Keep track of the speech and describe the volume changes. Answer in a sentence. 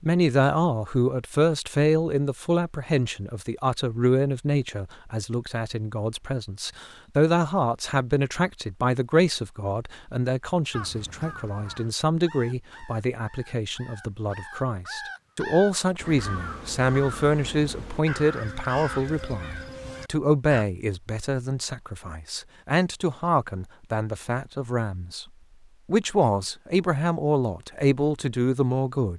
The loudness of the speech stays about the same.